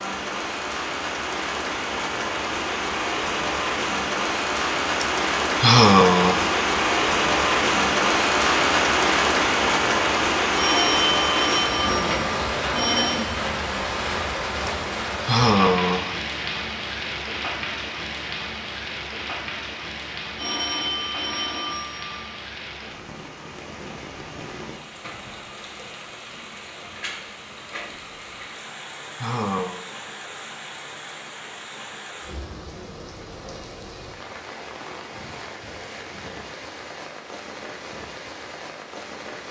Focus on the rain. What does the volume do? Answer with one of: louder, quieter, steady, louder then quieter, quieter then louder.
quieter.